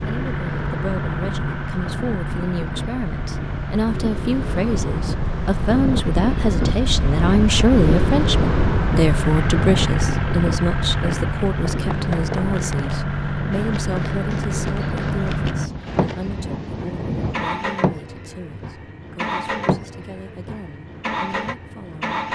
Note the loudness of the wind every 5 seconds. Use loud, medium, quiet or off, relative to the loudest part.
medium, loud, medium, medium, off.